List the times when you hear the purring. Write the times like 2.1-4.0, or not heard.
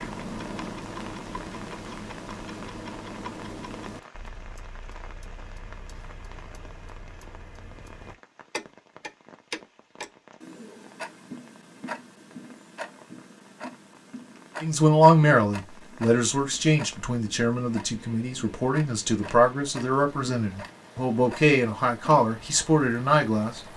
not heard.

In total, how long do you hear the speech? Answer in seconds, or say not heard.
9 s.